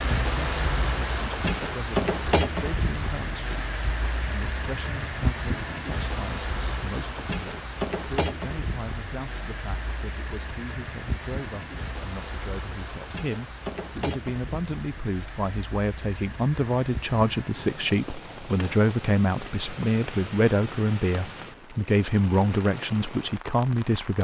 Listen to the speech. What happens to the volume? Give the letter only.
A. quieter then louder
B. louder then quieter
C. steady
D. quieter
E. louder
E.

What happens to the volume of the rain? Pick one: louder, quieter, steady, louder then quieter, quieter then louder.
quieter.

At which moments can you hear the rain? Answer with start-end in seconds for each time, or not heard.
0.0-24.1.